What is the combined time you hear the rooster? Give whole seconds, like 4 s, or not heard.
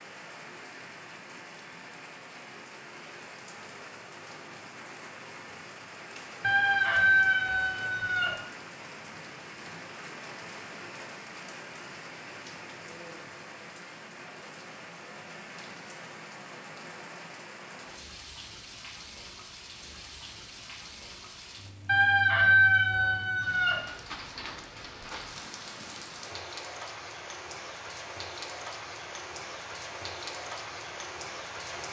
4 s.